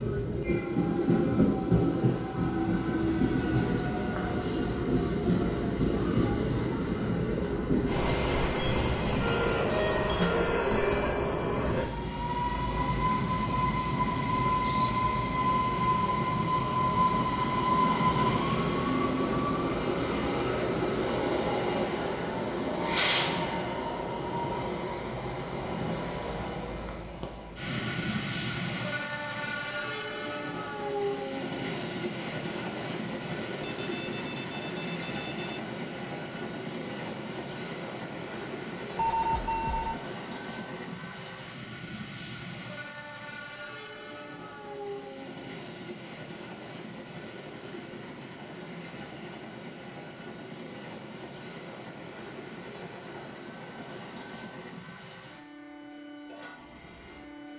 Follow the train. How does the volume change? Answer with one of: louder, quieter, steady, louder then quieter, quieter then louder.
quieter.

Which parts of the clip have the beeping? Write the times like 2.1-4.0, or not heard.
8.6-10.3, 33.6-35.6, 39.0-40.0.